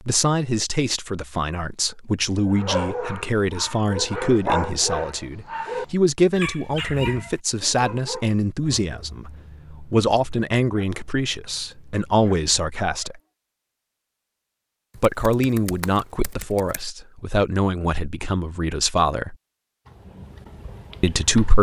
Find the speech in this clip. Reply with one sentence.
You can hear the speech from 0.1 to 13.2 s, from 15.0 to 19.4 s and from 21.0 to 21.5 s.